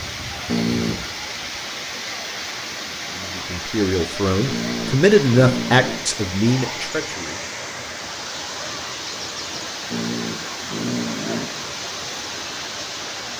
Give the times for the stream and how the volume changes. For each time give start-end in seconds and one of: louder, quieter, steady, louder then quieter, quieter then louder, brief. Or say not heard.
0.0-13.3 steady.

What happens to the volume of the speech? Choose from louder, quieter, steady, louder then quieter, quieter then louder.
louder then quieter.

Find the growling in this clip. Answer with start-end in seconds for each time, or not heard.
0.5-1.1, 4.5-6.0, 9.9-11.6.